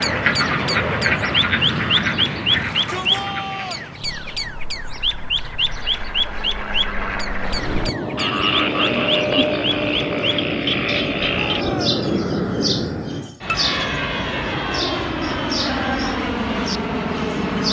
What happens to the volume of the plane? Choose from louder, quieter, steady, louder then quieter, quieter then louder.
quieter then louder.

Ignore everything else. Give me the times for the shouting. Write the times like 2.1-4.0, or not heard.
2.5-3.9, 11.2-12.0.